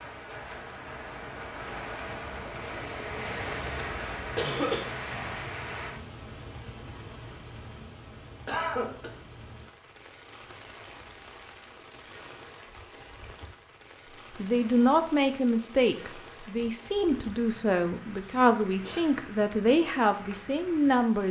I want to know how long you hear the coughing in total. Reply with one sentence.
The coughing can be heard for 2 seconds in total.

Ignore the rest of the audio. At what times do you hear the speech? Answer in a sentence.
The speech can be heard from 14.3 to 21.2 s.